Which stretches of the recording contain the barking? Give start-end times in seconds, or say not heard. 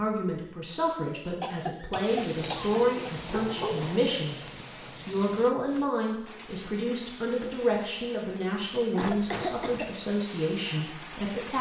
2.4-4.0.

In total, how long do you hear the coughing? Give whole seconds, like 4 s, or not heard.
2 s.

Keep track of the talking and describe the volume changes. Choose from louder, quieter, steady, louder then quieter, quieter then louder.
steady.